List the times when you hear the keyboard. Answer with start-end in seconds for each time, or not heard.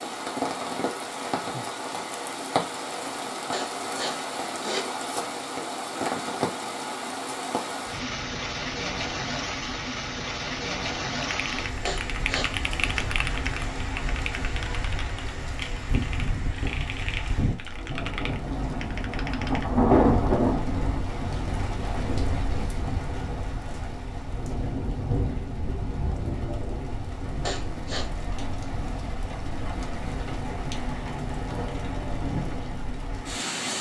11.2-19.6.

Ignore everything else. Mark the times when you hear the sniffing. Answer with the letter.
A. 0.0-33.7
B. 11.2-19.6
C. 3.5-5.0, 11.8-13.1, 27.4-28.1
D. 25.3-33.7
C.